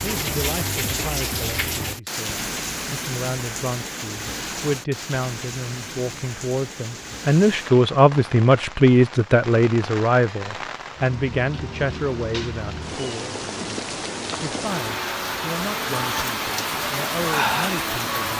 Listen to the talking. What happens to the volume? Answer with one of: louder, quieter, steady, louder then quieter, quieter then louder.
louder then quieter.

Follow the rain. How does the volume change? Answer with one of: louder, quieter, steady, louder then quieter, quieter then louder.
quieter then louder.